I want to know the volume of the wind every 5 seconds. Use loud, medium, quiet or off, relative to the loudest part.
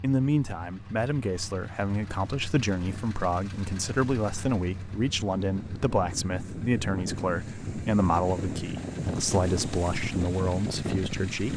off, loud, loud.